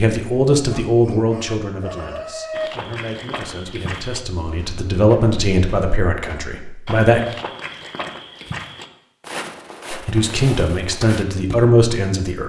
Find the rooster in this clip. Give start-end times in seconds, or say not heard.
0.7-2.7.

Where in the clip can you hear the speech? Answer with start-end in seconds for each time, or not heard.
0.0-7.2, 9.9-12.4.